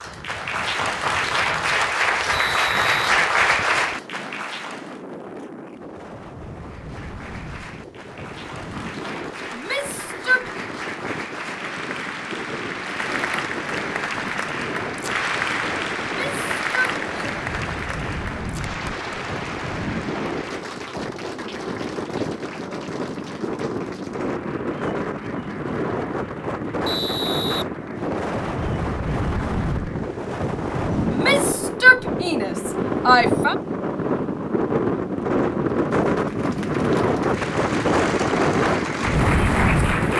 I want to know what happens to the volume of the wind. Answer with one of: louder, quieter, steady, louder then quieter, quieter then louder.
louder.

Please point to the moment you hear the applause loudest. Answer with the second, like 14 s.
3 s.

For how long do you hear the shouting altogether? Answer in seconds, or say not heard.
5 s.